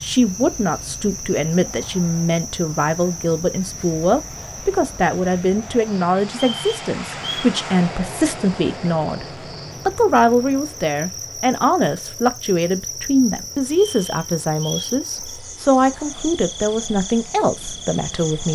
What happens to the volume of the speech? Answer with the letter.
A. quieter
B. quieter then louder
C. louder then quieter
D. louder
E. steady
E.